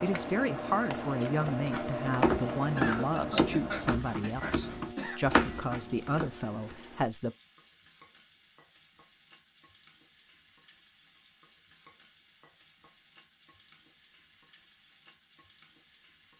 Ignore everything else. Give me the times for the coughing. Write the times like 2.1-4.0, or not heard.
2.8-5.2.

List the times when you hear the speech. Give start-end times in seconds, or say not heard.
0.0-7.3.